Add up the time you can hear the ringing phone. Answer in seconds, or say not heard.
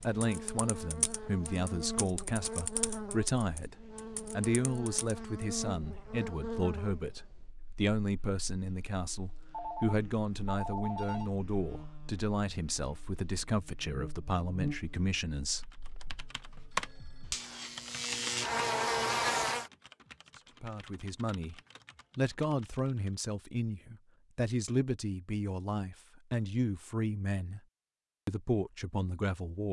3 s.